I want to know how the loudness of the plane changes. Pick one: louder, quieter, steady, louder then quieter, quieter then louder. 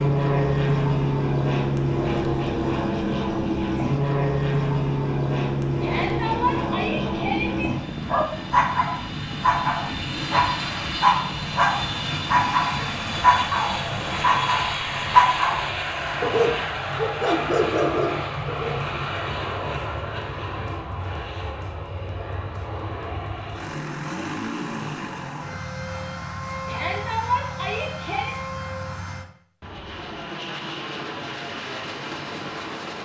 quieter.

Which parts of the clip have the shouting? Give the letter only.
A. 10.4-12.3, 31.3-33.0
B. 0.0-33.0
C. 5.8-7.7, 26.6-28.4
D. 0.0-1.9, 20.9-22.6
C.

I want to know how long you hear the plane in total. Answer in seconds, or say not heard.
33 s.